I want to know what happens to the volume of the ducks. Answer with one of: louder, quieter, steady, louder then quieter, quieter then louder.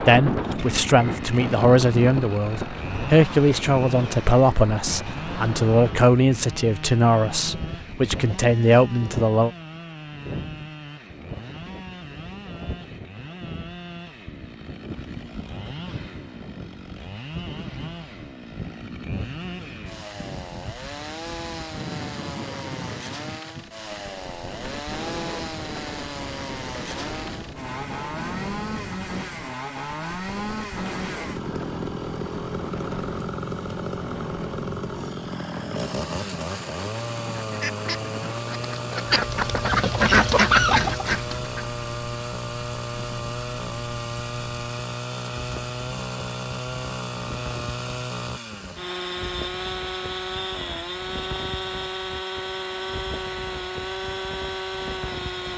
louder.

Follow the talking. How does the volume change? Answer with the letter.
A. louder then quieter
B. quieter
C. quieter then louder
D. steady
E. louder
D.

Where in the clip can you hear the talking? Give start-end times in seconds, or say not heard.
0.1-9.5.